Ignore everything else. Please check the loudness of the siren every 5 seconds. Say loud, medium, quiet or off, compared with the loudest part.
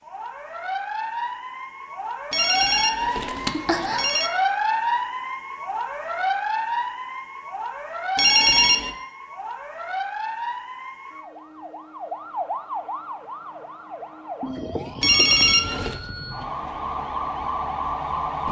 loud, loud, medium, loud.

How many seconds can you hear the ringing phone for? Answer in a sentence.
The ringing phone can be heard for 4 seconds in total.